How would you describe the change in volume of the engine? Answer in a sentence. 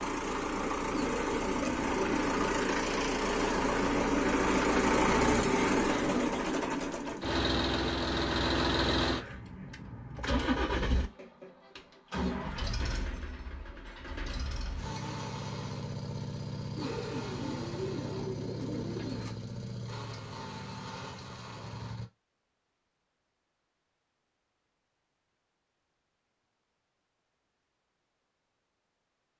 The loudness of the engine goes down.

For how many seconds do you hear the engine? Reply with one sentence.
The engine can be heard for 22 seconds in total.